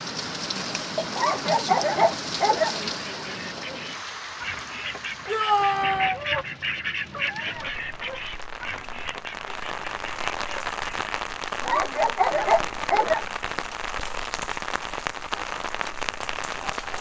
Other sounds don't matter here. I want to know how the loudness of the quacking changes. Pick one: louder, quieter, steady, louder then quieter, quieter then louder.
louder then quieter.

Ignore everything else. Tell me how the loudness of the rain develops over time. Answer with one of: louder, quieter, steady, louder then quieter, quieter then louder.
quieter then louder.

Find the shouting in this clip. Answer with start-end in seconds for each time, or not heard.
5.2-6.2.